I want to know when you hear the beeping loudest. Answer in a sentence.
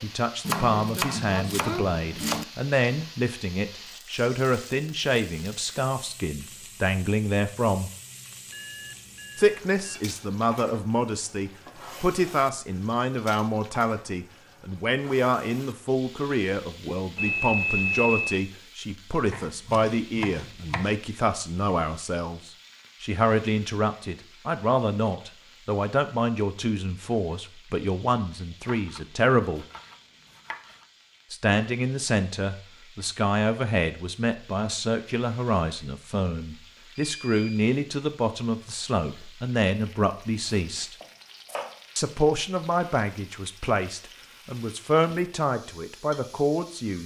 The volume of the beeping peaks at 18 seconds.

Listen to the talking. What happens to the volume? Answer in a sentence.
The loudness of the talking stays about the same.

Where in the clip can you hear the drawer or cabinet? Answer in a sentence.
You can't hear the drawer or cabinet here.